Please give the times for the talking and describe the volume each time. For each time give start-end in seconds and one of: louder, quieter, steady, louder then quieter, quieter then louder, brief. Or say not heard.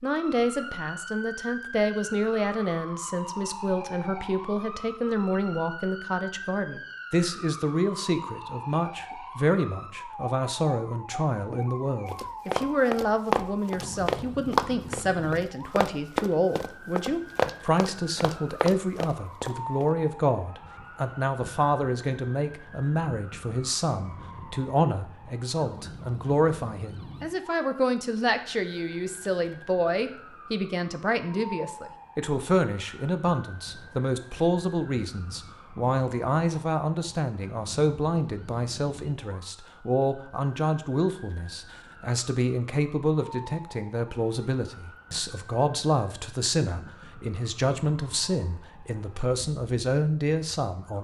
0.0-50.9 steady.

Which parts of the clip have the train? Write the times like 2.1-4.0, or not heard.
not heard.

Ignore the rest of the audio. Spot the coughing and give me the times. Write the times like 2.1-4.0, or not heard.
not heard.